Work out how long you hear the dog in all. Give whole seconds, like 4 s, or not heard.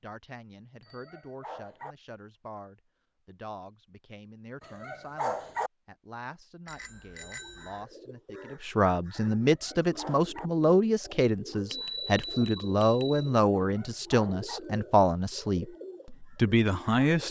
4 s.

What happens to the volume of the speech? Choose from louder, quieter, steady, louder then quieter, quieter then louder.
louder.